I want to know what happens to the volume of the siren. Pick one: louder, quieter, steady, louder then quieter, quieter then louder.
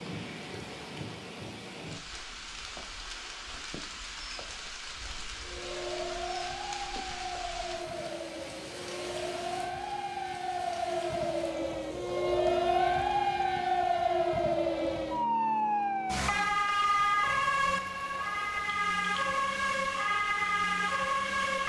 louder.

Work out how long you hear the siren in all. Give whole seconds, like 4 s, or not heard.
16 s.